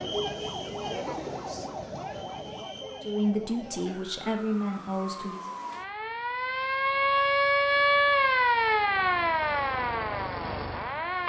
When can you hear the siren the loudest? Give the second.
8 s.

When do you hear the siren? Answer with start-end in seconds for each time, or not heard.
0.0-11.2.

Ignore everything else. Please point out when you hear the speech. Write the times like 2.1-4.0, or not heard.
3.0-5.5.